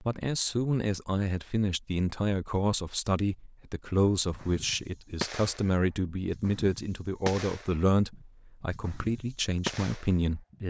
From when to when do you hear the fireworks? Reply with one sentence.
You can hear the fireworks from 4.2 to 10.6 s.